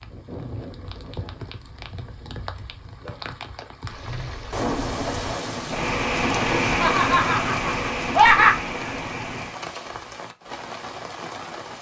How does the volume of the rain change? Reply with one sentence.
The volume of the rain goes up, then down.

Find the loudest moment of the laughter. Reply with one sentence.
The volume of the laughter peaks at 8 seconds.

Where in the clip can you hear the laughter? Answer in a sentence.
The laughter can be heard from 6.8 to 8.6 s.